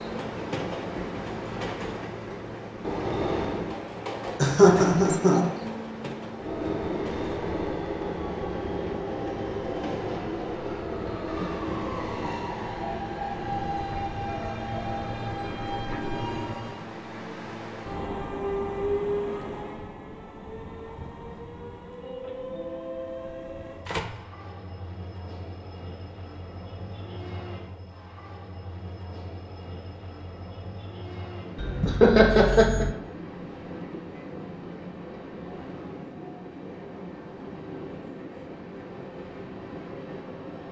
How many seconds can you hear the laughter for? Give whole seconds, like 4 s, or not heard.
2 s.